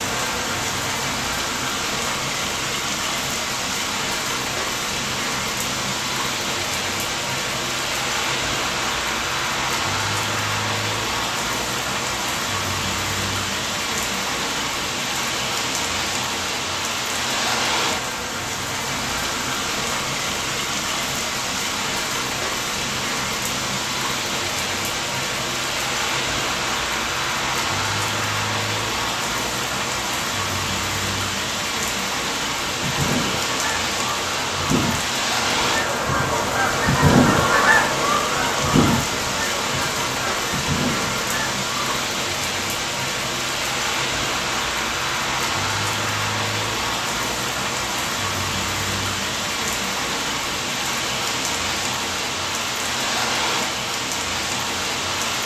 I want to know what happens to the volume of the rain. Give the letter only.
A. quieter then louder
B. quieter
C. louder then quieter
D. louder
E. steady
E.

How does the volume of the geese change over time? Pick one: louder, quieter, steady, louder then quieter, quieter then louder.
louder then quieter.